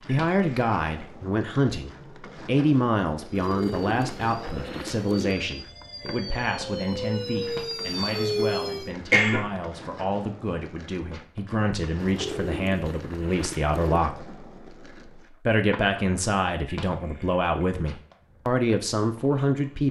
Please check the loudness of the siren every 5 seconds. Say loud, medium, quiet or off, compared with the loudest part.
quiet, loud, off, off.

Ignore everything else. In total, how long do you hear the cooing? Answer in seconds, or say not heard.
4 s.